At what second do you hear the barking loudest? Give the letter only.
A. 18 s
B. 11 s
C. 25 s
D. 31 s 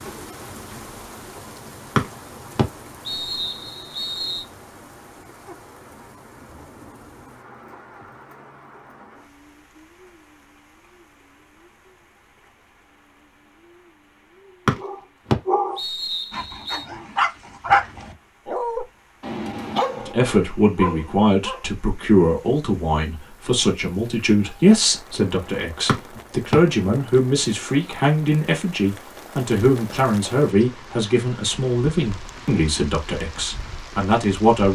A.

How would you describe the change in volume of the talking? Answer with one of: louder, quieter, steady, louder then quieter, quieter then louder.
steady.